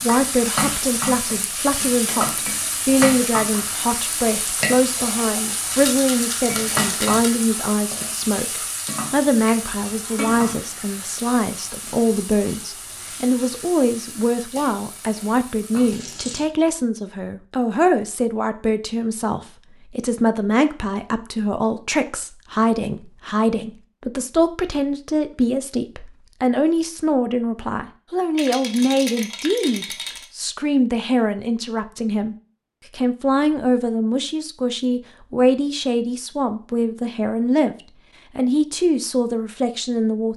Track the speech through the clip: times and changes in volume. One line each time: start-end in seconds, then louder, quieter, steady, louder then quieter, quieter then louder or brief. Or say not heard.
0.0-40.3 steady.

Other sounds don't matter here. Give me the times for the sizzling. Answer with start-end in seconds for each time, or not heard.
0.0-16.4.